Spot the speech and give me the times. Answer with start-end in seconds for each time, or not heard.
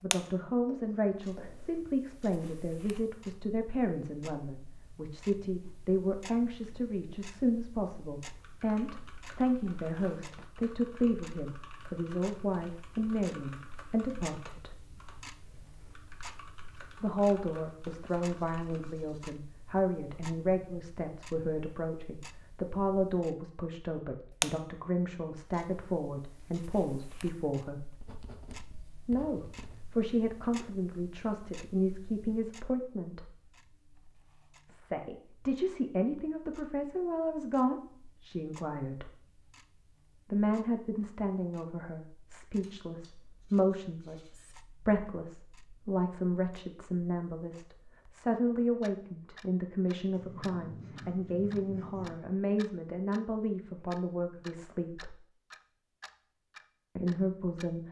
0.0-14.8, 17.0-28.0, 29.1-33.3, 34.6-39.1, 40.3-55.1, 57.0-57.8.